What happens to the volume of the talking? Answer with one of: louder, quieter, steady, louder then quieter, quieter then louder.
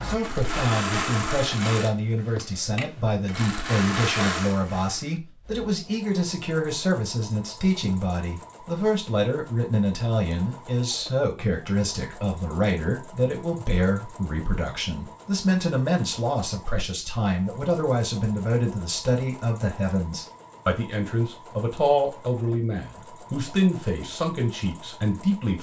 steady.